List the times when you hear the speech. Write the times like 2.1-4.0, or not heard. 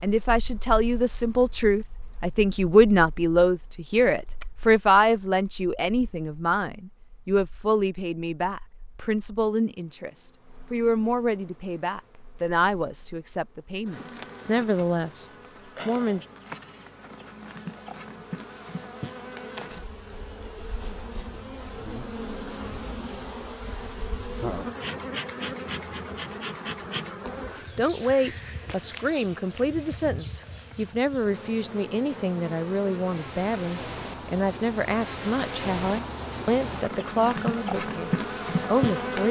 0.0-15.2, 15.8-16.2, 27.3-39.2.